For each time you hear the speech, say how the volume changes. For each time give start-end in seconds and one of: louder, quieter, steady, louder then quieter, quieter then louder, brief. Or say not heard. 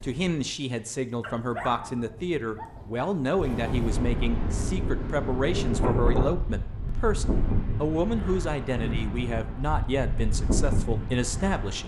0.0-11.8 steady.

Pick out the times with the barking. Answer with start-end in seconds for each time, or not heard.
1.2-3.0.